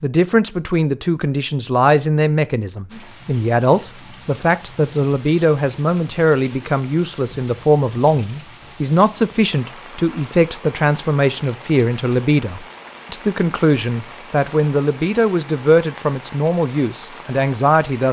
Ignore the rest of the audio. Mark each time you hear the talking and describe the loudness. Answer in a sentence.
The talking can be heard from 0.0 to 18.0 s, at a steady volume.